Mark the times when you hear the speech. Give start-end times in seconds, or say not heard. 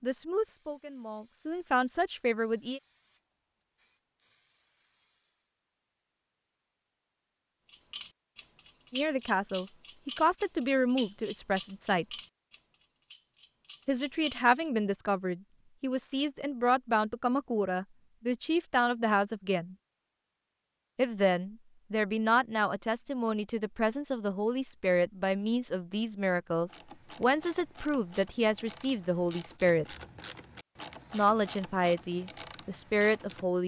0.0-2.8, 8.9-12.1, 13.8-19.8, 20.9-29.9, 31.1-33.6.